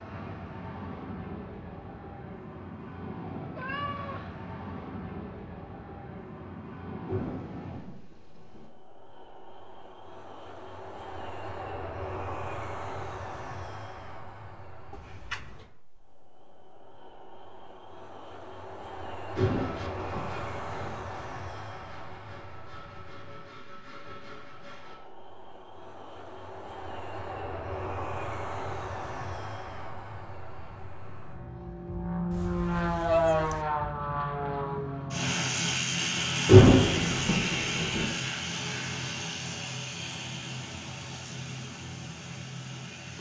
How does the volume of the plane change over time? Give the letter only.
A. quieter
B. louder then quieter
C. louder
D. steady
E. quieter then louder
C.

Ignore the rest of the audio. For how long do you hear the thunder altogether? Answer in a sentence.
You can hear the thunder for 5 seconds altogether.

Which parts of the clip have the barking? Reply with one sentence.
The barking can't be heard in this clip.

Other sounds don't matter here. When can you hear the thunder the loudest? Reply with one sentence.
The volume of the thunder peaks at 37 seconds.